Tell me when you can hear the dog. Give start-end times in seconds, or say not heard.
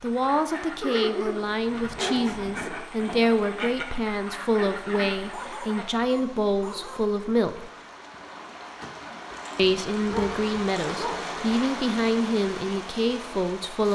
0.8-2.7, 5.2-7.0, 9.3-11.2.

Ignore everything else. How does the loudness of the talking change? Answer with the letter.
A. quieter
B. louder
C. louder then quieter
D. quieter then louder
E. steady
E.